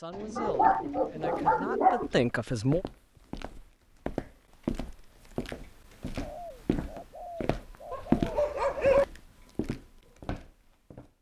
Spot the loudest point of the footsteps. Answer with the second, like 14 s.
8 s.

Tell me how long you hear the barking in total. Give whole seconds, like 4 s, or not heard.
3 s.